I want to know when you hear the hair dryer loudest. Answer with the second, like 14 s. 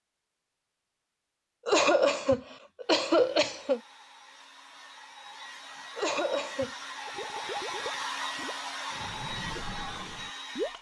8 s.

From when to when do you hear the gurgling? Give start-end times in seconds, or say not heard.
7.0-10.7.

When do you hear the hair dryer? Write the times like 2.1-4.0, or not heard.
2.8-10.7.